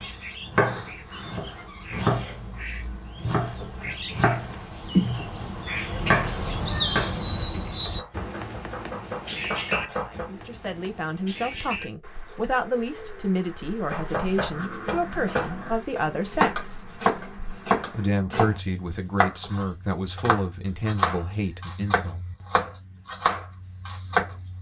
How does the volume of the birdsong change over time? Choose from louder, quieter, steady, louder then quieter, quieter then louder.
louder then quieter.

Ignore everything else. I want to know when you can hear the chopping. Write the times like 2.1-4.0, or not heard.
0.0-10.2, 13.9-24.4.